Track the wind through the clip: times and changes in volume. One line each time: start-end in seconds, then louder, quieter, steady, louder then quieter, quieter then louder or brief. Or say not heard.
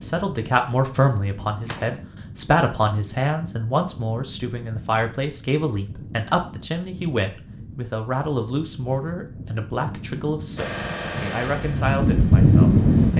0.0-13.1 louder.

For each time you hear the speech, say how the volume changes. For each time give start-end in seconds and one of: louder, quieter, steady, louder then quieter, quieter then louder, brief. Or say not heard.
0.0-13.1 quieter.